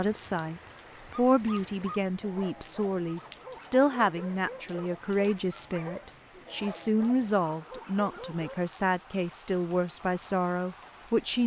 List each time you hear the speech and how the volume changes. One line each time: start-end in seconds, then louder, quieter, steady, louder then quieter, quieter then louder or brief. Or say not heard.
0.0-11.4 steady.